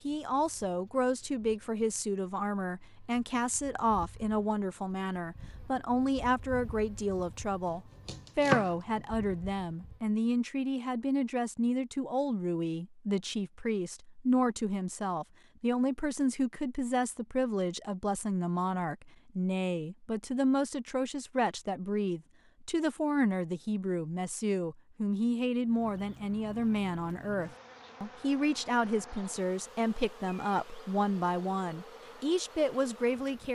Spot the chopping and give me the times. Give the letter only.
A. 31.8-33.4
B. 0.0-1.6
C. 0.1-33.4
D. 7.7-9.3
D.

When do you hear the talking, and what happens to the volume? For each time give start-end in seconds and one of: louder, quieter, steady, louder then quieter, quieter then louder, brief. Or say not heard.
0.1-33.4 steady.